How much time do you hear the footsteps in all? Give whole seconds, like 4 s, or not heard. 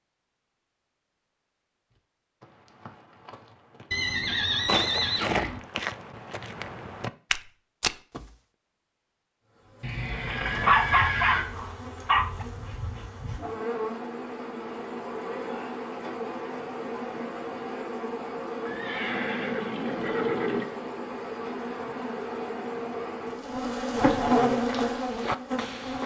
8 s.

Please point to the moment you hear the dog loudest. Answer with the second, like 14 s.
11 s.